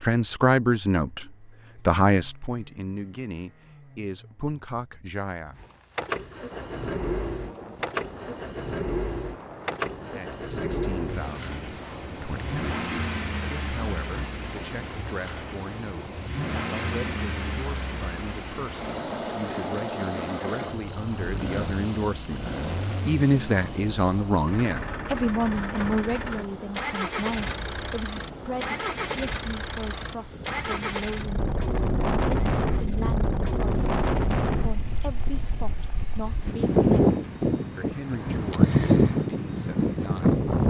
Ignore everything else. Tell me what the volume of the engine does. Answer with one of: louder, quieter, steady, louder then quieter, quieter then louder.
quieter.